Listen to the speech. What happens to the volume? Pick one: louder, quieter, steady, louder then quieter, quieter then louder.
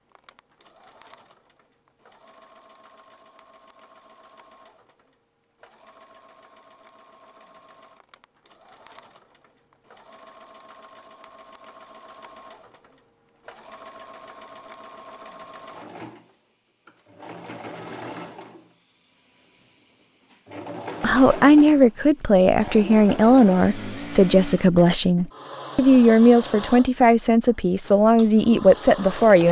steady.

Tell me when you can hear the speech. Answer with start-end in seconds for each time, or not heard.
21.0-29.4.